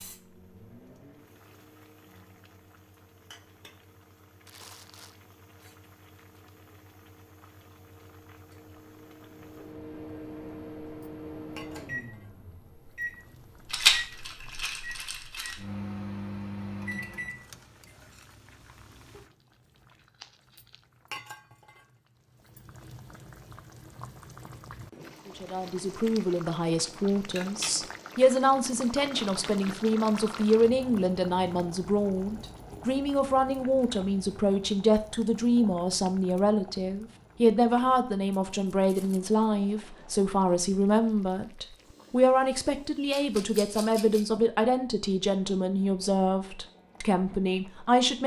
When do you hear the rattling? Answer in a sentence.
The rattling can be heard from 13.7 to 15.6 s and from 43.1 to 44.4 s.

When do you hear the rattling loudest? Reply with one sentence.
The loudest moment of the rattling is at 14 seconds.